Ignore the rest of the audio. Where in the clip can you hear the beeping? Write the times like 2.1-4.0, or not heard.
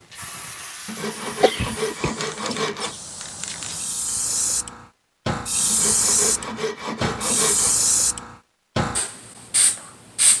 not heard.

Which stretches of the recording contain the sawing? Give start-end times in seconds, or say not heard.
0.8-3.0, 5.7-7.8.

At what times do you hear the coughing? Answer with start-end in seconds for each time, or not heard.
1.4-2.1.